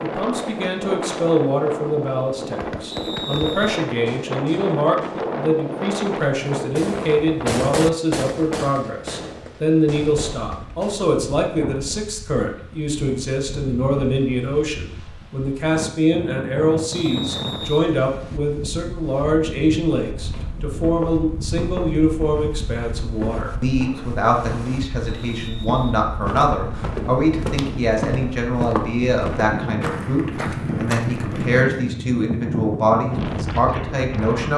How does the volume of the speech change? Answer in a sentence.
The loudness of the speech stays about the same.